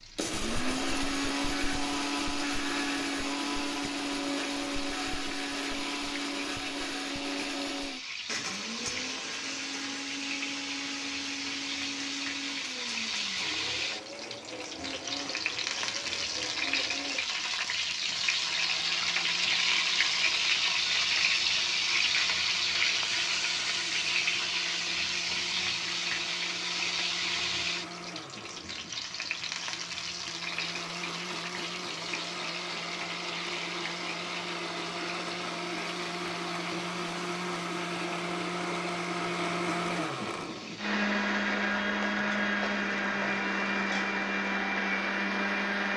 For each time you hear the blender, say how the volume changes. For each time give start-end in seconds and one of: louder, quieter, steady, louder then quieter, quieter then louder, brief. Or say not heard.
0.1-45.9 quieter then louder.